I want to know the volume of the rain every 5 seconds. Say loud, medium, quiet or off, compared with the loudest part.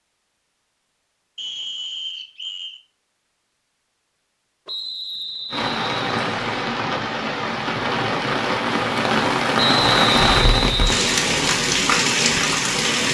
off, loud, loud.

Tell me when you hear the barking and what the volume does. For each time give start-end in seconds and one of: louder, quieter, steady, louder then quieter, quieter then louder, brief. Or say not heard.
not heard.